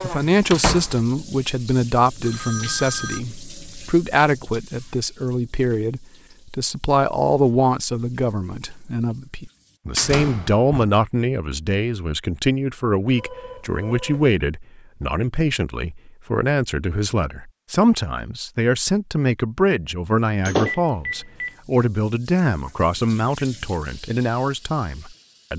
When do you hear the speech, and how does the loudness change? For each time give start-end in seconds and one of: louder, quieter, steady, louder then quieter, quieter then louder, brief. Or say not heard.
0.0-25.5 steady.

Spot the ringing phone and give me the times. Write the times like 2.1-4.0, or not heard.
2.2-3.2, 13.2-14.3, 20.6-21.6.